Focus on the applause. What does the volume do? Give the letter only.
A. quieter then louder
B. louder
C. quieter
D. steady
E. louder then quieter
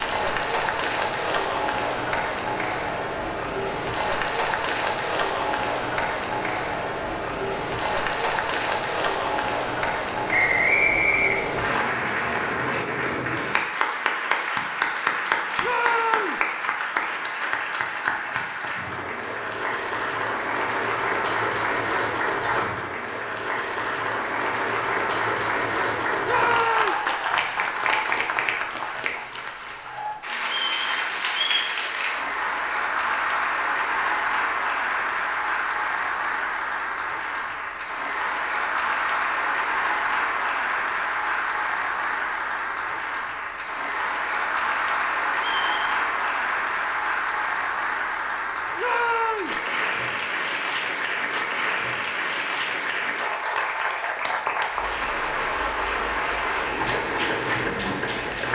D.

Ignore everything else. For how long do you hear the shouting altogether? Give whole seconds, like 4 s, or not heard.
2 s.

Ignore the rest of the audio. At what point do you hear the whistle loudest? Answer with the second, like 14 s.
11 s.